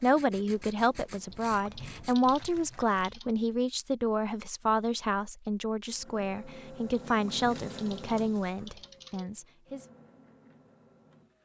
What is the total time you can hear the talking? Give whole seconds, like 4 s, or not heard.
10 s.